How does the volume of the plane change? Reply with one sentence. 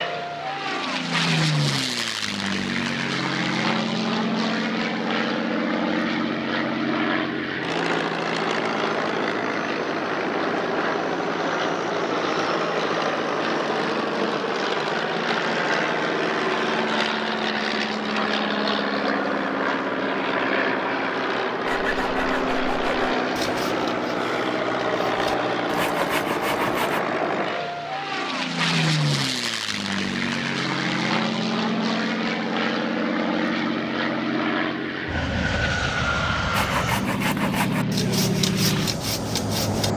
The volume of the plane stays about the same.